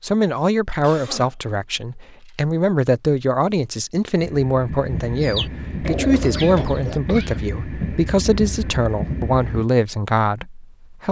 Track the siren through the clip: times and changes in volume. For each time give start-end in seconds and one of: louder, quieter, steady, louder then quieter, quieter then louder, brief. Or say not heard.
not heard.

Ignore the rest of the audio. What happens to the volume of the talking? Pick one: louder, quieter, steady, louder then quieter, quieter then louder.
steady.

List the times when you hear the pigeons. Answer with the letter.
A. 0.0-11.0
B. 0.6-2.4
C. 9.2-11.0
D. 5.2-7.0
D.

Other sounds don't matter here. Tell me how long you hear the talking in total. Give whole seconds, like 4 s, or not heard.
11 s.